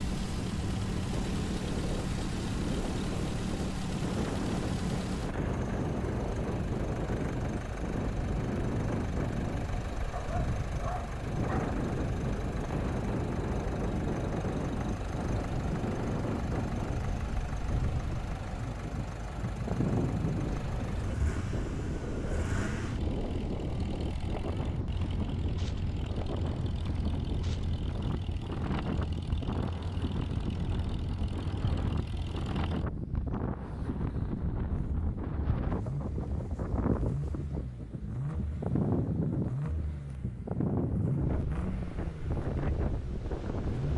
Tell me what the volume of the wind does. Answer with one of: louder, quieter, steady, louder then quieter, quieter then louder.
steady.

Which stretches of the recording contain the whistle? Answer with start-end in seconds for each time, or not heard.
not heard.